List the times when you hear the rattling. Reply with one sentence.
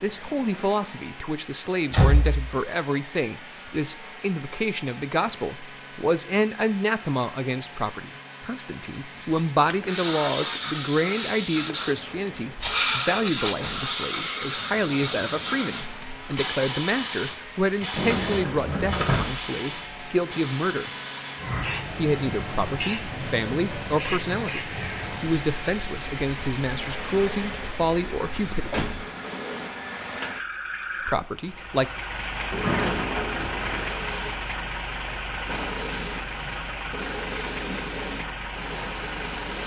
You can hear the rattling from 12.6 to 13.8 s.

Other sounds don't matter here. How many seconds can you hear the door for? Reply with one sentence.
The door can be heard for 3 seconds in total.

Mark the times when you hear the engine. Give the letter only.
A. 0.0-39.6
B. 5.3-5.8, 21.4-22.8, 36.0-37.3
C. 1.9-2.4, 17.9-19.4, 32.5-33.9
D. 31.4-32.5
A.